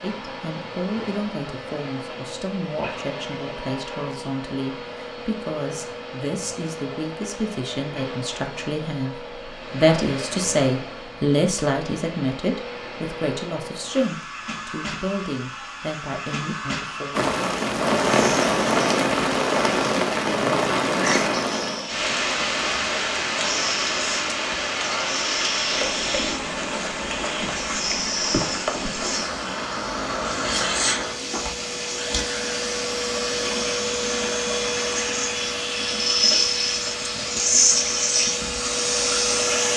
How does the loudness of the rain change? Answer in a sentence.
The volume of the rain goes down.